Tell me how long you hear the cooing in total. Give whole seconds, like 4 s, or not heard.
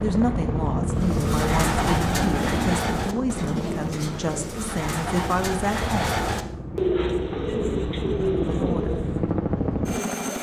8 s.